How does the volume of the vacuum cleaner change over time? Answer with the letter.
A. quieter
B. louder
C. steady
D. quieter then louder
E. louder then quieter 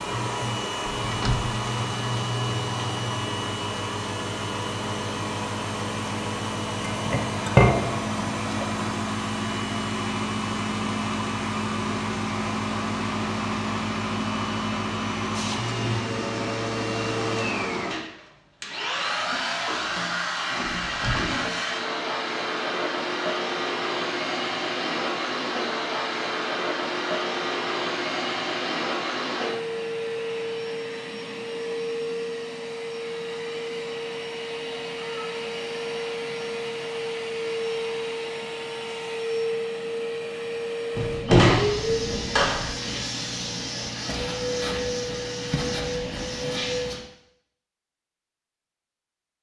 C.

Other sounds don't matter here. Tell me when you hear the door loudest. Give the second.
41 s.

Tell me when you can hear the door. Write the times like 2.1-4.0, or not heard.
1.0-1.6, 20.7-21.3, 41.0-42.7.